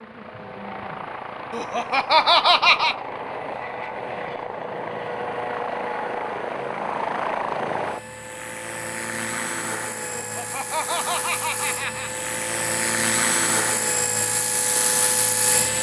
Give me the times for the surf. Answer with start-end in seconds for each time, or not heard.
not heard.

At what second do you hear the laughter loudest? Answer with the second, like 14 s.
2 s.